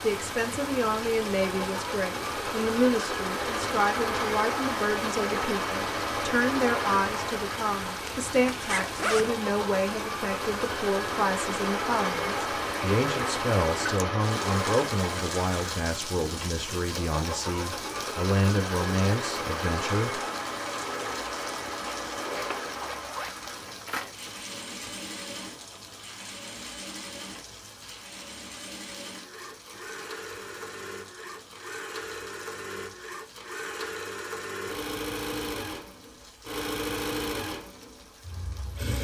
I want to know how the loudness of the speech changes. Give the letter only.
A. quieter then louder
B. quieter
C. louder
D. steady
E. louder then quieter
D.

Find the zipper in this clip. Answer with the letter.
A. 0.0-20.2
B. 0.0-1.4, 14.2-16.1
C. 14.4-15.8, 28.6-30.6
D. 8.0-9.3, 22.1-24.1
D.